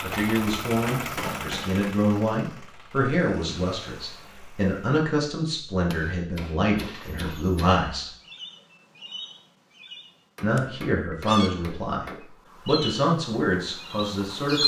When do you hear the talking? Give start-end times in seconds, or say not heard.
0.0-8.1, 10.4-12.1, 12.7-14.6.